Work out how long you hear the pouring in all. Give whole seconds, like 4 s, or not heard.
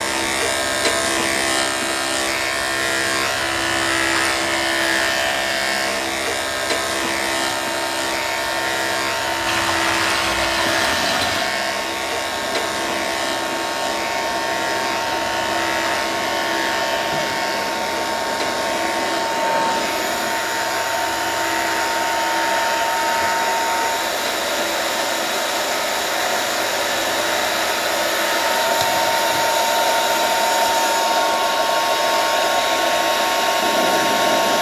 2 s.